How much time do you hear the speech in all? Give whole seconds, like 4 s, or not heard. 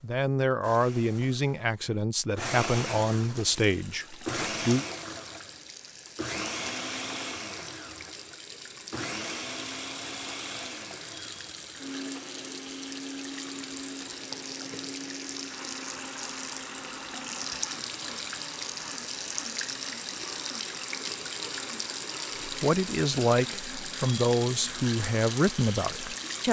9 s.